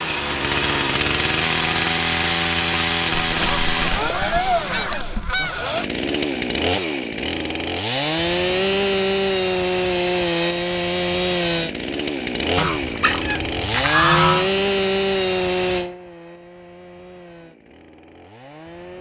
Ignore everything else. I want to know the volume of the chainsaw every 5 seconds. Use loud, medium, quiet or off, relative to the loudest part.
loud, loud, loud, medium.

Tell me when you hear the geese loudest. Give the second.
14 s.